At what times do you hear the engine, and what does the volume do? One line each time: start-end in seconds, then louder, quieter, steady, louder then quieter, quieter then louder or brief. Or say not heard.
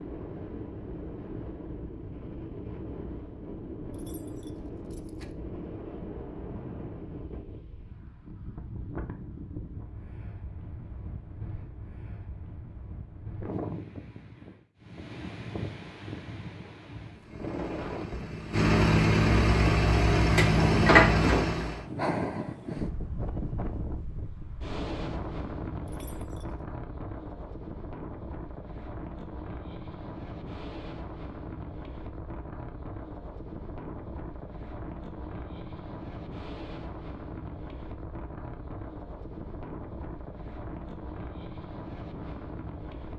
17.1-21.9 louder.